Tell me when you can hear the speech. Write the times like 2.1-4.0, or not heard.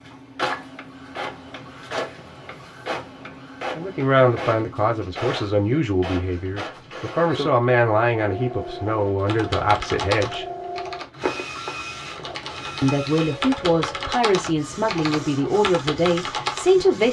3.8-10.4, 12.8-17.0.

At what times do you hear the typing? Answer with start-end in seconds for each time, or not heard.
9.2-16.8.